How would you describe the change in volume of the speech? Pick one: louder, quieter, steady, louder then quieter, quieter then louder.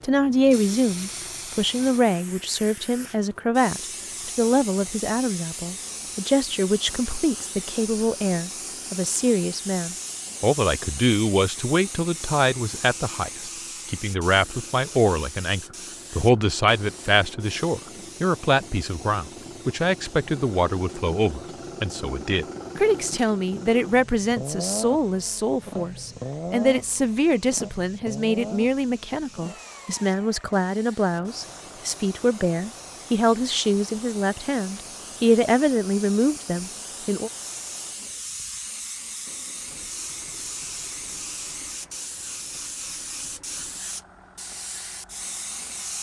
steady.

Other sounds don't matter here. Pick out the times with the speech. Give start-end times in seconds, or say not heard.
0.0-37.3.